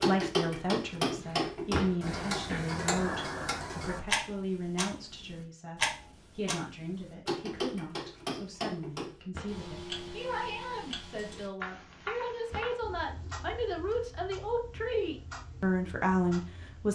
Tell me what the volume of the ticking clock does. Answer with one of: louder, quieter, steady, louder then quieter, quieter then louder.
quieter.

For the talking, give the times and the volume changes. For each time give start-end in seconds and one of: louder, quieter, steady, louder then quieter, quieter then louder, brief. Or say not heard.
0.1-16.9 quieter then louder.